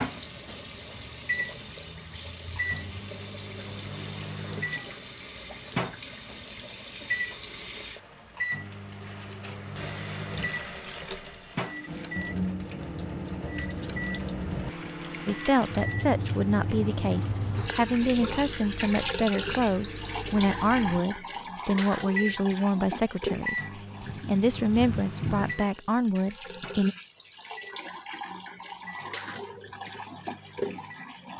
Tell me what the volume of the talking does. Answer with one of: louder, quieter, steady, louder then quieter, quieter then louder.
steady.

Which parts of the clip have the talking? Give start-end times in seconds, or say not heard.
15.2-26.9.